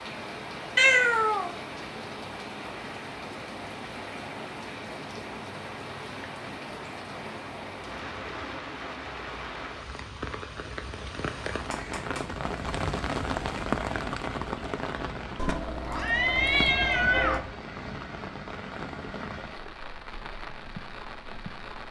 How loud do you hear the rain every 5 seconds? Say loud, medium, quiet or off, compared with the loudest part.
medium, medium, loud, medium, medium.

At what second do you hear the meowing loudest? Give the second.
1 s.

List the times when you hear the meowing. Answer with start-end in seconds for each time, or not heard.
0.8-1.6, 11.7-12.3, 15.3-17.4.